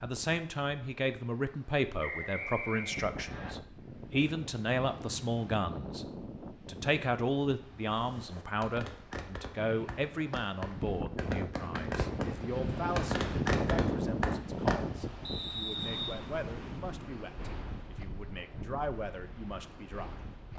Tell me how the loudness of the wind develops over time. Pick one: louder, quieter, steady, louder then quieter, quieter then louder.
louder then quieter.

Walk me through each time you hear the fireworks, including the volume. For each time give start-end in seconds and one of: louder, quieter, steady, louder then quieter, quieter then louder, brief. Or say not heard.
7.8-14.8 louder.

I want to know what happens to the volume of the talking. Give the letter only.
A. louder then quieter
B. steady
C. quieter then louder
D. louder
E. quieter
E.